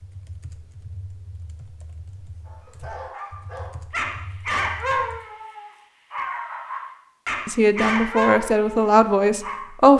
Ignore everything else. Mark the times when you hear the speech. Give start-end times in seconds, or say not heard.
7.5-9.9.